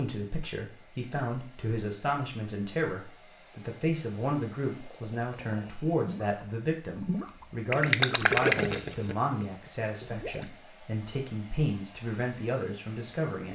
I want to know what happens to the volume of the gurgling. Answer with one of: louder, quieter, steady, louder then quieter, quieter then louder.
louder then quieter.